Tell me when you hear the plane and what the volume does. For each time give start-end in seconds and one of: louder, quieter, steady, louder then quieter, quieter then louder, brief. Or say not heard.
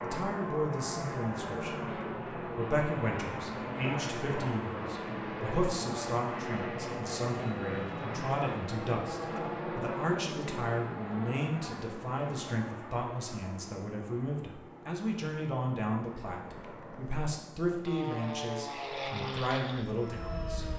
0.0-20.7 quieter then louder.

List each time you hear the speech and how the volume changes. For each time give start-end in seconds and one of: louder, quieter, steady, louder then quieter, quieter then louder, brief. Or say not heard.
0.0-20.6 steady.